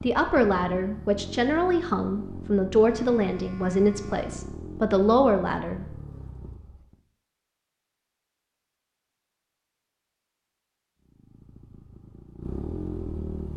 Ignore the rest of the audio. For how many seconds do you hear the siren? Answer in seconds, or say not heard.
not heard.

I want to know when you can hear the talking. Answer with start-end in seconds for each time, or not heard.
0.0-5.8.